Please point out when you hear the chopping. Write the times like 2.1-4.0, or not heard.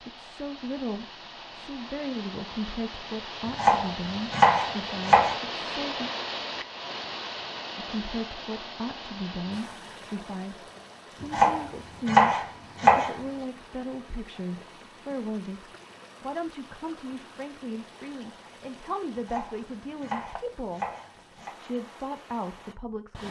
3.5-5.3, 11.2-13.2, 19.1-21.5.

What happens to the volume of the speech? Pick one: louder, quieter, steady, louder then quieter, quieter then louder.
steady.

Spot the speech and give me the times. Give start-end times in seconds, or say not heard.
0.0-6.1, 7.8-23.2.